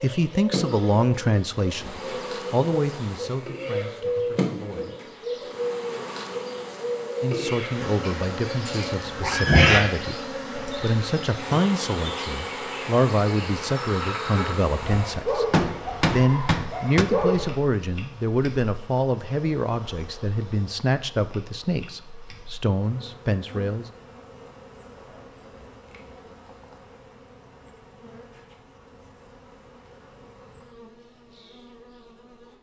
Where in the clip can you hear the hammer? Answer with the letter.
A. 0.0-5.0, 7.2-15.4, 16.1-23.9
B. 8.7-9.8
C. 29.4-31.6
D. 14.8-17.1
D.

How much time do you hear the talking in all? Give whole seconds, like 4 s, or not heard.
21 s.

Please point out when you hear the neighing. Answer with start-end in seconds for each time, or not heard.
8.7-9.8.